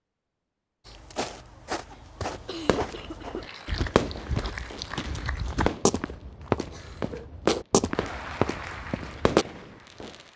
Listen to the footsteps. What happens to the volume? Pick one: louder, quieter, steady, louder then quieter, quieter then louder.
louder.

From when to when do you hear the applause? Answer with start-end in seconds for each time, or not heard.
3.4-5.5, 7.9-10.3.